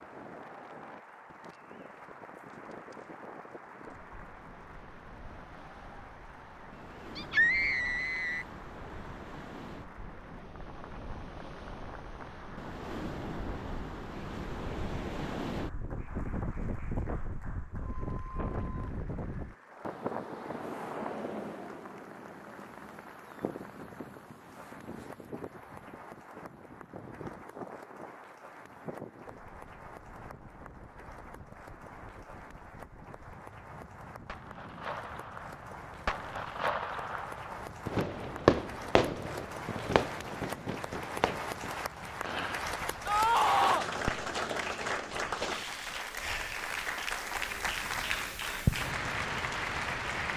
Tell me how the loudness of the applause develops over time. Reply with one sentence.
The volume of the applause goes up.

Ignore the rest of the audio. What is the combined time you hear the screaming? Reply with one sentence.
You can hear the screaming for 2 seconds altogether.